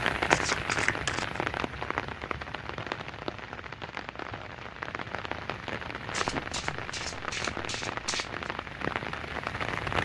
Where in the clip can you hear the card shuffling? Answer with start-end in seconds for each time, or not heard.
0.3-1.4, 6.1-8.5.